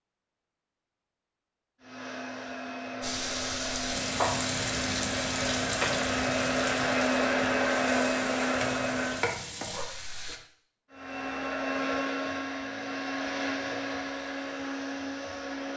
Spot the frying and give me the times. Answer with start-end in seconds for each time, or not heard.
3.0-10.4.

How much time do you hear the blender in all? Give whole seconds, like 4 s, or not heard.
12 s.